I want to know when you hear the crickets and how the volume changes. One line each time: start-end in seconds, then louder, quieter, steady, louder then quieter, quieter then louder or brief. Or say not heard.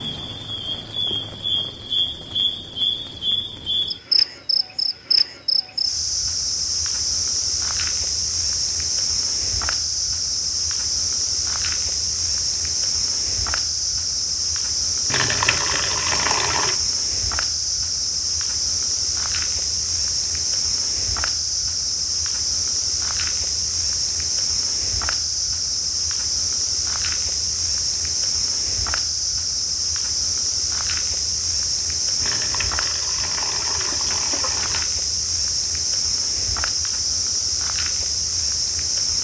0.0-39.1 steady.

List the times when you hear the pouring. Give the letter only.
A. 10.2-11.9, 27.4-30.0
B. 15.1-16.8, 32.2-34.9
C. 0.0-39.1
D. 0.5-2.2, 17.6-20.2
B.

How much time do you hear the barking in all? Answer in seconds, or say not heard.
not heard.